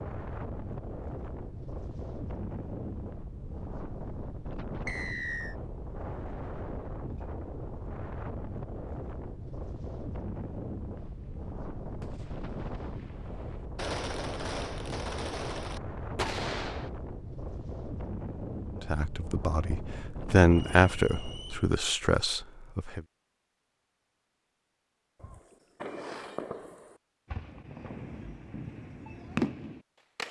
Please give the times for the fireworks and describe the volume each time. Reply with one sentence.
The fireworks can be heard from 10.9 to 16.9 s, getting quieter then louder; and from 25.2 to 30.2 s, getting quieter then louder.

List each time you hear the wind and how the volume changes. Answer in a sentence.
The wind can be heard from 0.0 to 21.8 s, at a steady volume.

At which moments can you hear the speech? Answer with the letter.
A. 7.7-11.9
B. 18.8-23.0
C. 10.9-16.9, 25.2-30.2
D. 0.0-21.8
B.